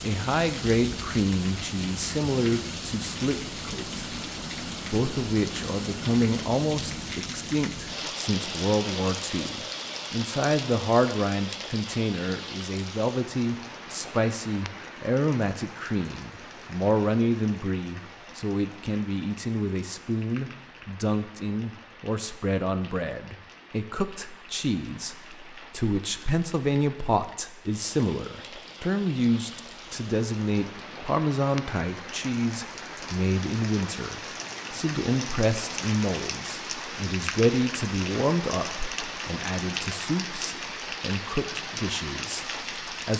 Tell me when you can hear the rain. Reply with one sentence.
The rain can be heard from 0.0 to 43.1 s.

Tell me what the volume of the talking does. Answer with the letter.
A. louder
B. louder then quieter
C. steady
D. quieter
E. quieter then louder
C.